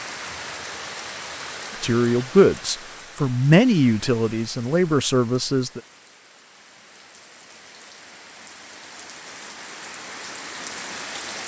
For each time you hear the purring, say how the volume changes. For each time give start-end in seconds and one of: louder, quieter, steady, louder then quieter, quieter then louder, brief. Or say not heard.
not heard.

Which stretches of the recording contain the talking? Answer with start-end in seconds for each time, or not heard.
1.8-5.8.